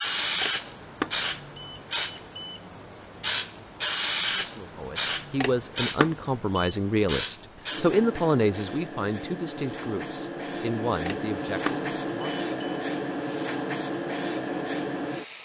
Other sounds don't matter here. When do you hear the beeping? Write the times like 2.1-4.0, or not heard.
0.4-2.6, 5.4-6.8, 11.1-12.8.